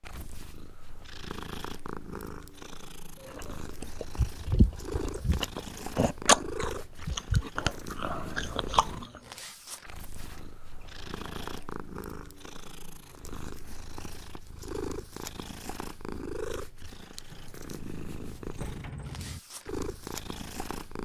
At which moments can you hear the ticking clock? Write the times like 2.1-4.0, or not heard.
not heard.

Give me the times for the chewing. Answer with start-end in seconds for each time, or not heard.
3.2-9.2.